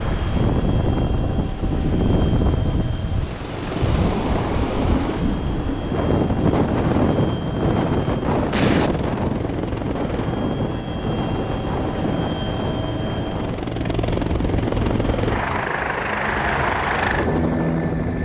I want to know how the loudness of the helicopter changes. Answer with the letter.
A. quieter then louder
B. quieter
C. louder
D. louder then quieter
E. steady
C.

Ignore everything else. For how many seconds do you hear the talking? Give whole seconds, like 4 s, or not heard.
not heard.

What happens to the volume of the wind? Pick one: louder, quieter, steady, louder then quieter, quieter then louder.
quieter.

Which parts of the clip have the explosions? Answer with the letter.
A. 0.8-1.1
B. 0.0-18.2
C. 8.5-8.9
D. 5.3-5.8
C.